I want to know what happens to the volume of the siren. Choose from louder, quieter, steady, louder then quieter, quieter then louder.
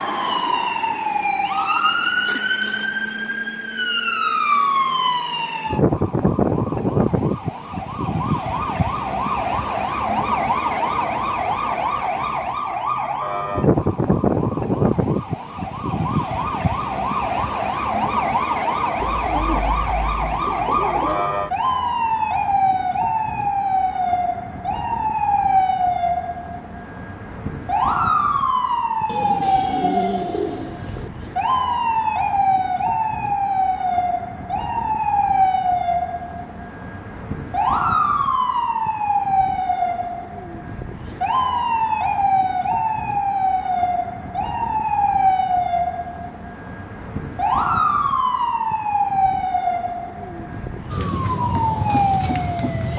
steady.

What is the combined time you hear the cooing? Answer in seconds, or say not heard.
4 s.